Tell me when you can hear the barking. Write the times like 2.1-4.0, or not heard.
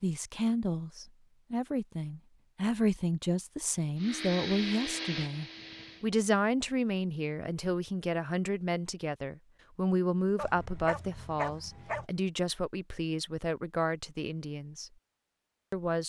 10.3-12.1.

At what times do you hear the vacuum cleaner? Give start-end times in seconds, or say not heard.
4.0-6.1.